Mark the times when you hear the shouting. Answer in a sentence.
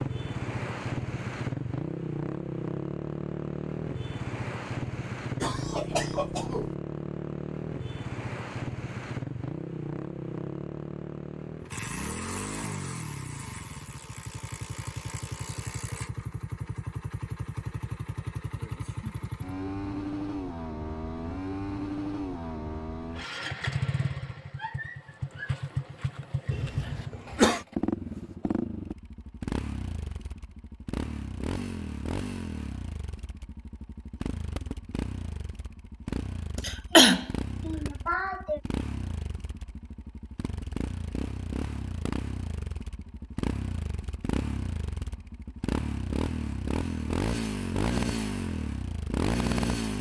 The shouting can't be heard in this clip.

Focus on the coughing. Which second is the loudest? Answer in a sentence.
The loudest moment of the coughing is at 37 seconds.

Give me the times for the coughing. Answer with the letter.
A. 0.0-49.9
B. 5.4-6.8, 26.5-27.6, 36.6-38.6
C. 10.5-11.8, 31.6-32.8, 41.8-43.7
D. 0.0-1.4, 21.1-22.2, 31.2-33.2
B.